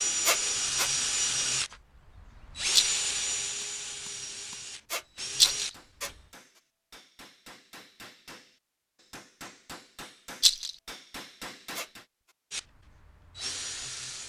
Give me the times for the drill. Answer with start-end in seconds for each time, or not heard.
0.0-6.2, 12.5-14.2.